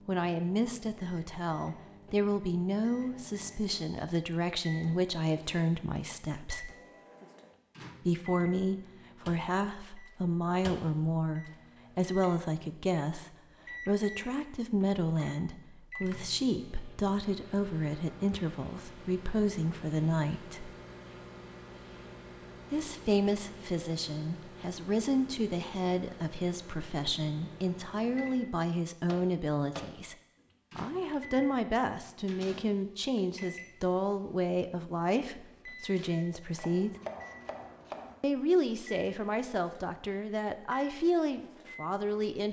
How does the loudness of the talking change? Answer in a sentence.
The volume of the talking stays about the same.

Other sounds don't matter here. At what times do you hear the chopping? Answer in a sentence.
The chopping can be heard from 36.5 to 38.1 s.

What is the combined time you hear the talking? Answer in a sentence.
You can hear the talking for 37 seconds altogether.